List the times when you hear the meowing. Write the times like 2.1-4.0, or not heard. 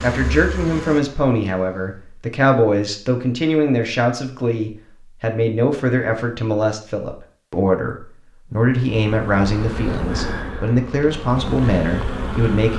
not heard.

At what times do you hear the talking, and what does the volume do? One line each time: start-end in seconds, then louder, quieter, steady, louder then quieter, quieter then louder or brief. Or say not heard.
0.0-12.7 steady.